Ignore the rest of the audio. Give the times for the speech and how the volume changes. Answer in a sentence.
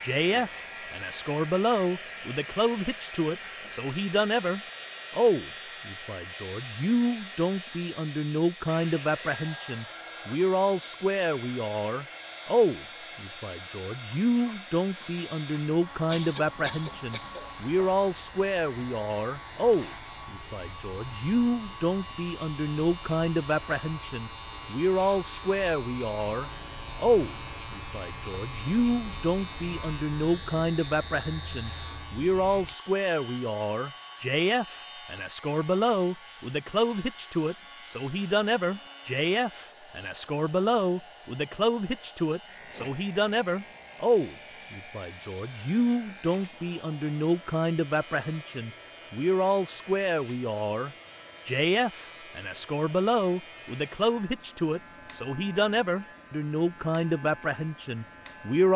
You can hear the speech from 0.0 to 58.7 s, at a steady volume.